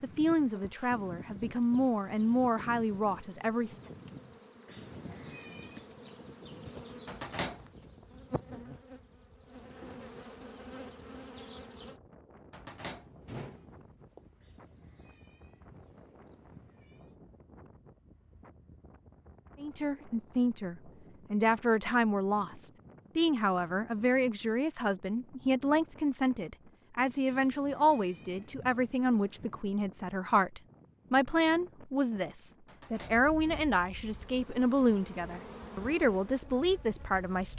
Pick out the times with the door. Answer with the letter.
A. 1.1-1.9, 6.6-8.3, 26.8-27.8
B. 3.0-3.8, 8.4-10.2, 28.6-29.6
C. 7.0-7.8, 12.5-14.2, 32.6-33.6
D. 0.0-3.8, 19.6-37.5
C.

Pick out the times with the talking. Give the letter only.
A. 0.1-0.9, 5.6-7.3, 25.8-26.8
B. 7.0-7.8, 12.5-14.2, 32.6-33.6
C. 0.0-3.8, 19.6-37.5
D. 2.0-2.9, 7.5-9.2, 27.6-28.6
C.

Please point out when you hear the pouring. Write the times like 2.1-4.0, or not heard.
not heard.